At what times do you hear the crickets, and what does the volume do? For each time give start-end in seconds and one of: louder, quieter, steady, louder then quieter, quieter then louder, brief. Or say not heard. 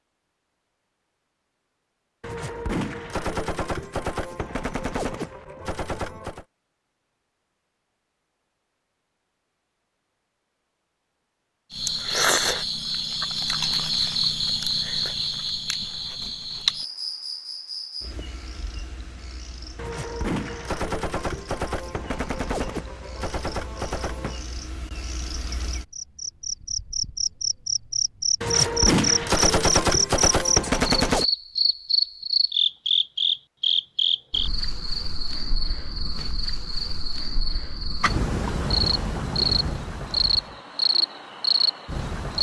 11.7-42.3 quieter then louder.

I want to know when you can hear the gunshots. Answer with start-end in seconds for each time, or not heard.
2.2-6.5, 19.8-24.4, 28.4-31.2.